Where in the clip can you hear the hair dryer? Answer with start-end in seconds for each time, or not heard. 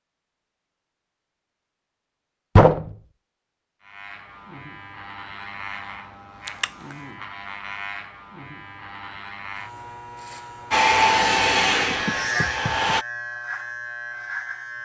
10.7-13.1.